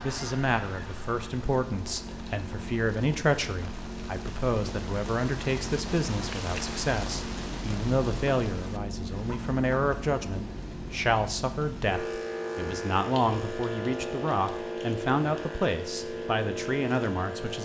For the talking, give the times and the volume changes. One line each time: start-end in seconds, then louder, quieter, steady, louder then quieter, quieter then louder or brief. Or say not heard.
0.0-17.6 steady.